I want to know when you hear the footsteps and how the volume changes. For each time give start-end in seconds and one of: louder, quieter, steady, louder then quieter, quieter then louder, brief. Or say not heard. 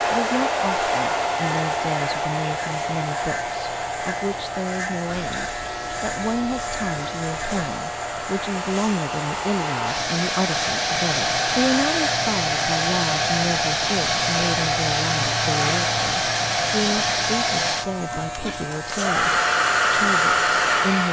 not heard.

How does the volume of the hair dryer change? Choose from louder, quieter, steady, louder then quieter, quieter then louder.
quieter then louder.